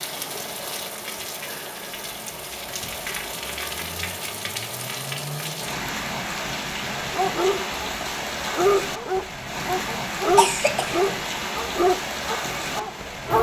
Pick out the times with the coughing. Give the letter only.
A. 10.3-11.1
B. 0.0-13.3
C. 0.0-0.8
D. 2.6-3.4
A.